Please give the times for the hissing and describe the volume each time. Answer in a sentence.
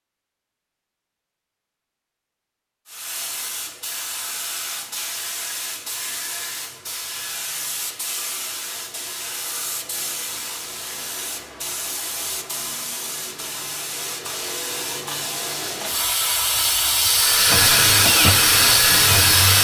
You can hear the hissing from 2.9 to 19.6 s, getting louder.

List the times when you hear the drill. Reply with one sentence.
The drill can be heard from 17.1 to 19.6 s.